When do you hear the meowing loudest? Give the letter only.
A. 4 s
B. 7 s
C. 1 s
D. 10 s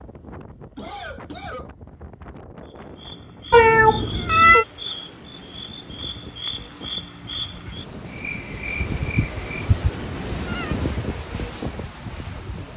A.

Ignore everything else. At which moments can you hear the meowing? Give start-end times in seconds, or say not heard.
3.5-4.7, 8.8-10.8.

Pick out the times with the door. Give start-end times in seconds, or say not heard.
not heard.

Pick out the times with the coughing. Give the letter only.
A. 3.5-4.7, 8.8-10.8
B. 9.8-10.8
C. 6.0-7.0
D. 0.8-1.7
D.